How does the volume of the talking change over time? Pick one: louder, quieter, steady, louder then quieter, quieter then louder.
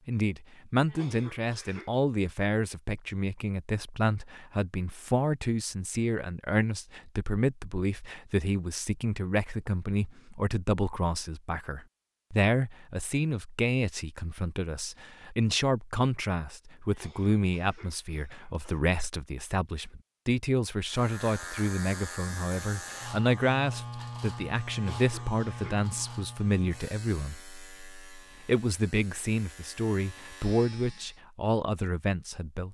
steady.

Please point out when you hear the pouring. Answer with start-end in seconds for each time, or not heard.
not heard.